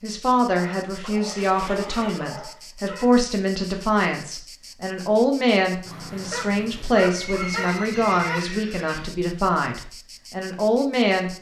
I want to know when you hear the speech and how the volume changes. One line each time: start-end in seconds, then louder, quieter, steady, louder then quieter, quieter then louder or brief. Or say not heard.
0.0-11.3 steady.